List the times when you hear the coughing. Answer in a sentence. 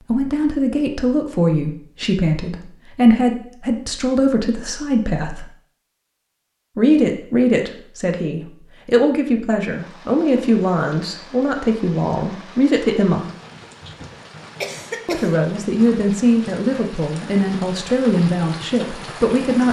The coughing can be heard from 14.6 to 15.3 s.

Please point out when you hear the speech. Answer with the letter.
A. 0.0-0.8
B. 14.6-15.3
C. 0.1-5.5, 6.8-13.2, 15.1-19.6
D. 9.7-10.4
C.